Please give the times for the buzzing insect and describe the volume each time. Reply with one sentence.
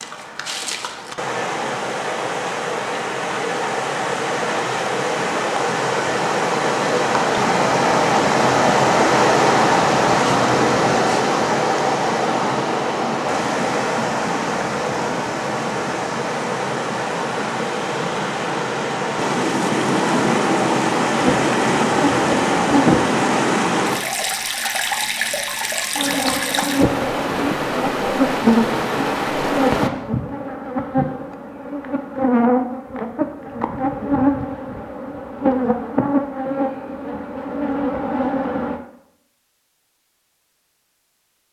The buzzing insect can be heard briefly from 21.1 to 23.1 s; and from 25.9 to 38.8 s, at a steady volume.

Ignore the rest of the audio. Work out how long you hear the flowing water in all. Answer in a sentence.
The flowing water can be heard for 30 seconds in total.